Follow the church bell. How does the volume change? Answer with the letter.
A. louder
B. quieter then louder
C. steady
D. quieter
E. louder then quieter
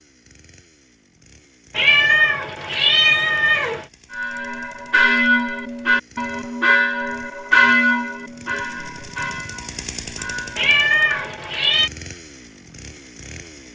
D.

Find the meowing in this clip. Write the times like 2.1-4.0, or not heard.
1.8-3.9, 10.6-11.9.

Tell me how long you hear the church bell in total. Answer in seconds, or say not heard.
7 s.